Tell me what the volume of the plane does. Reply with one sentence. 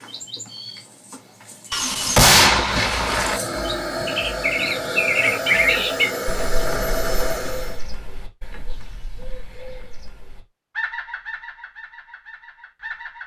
The loudness of the plane stays about the same.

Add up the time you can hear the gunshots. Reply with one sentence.
The gunshots can be heard for 2 seconds in total.